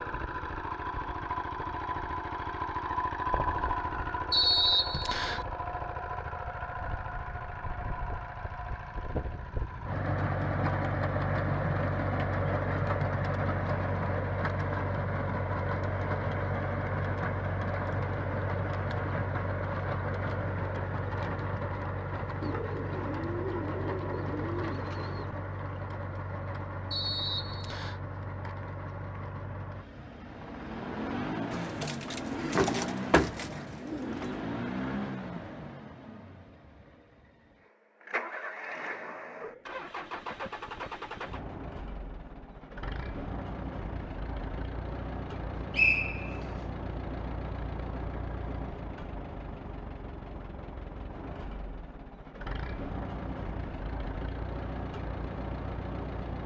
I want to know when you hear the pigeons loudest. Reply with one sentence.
The loudest moment of the pigeons is at 33 seconds.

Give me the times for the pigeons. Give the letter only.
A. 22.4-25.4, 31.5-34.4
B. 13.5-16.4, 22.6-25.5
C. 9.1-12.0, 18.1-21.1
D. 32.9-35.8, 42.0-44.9
A.